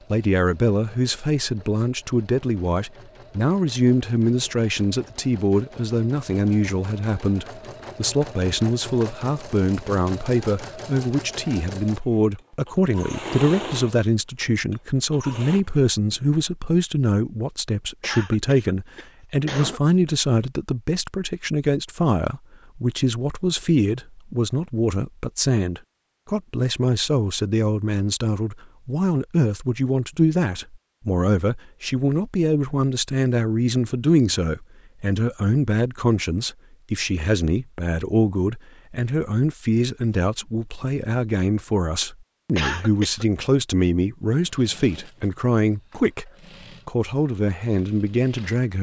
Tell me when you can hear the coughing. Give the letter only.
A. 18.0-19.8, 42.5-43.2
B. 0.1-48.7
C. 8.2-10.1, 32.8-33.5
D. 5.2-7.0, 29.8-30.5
A.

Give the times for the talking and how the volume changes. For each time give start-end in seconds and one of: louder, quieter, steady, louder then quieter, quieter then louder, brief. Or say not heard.
0.1-48.7 steady.